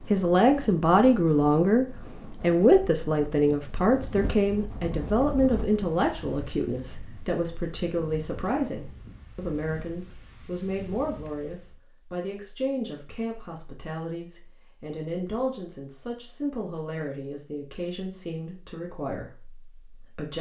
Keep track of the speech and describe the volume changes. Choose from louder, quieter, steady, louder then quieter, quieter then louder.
quieter.